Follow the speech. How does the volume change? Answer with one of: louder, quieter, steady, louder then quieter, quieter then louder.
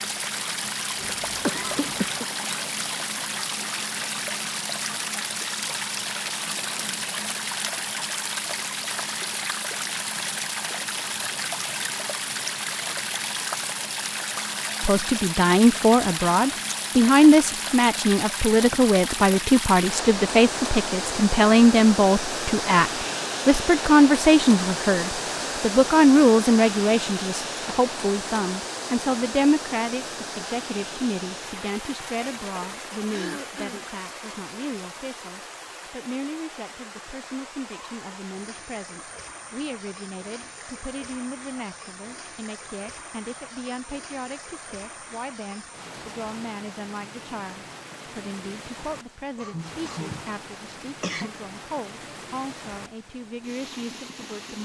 quieter.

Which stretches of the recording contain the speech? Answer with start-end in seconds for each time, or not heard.
14.8-54.5.